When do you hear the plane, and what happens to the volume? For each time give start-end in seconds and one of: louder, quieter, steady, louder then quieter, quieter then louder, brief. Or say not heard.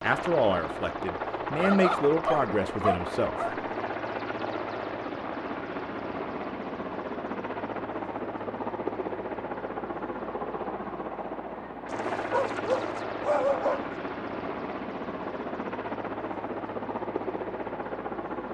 0.0-18.4 steady.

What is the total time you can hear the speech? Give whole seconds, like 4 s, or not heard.
3 s.